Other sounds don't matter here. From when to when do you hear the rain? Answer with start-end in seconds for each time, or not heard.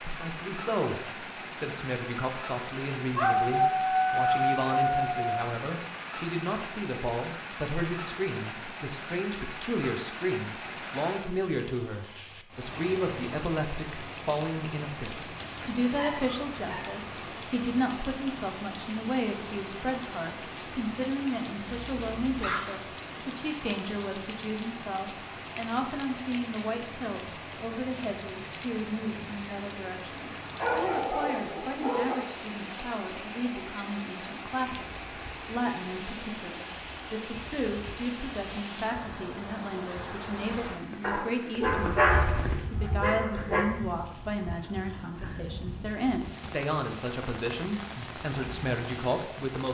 0.0-49.7.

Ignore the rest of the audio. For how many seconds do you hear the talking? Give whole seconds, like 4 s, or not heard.
50 s.